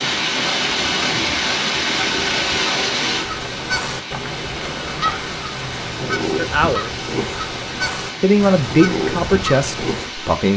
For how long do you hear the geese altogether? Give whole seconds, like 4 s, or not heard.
8 s.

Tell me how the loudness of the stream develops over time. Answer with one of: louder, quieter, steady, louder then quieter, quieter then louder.
quieter.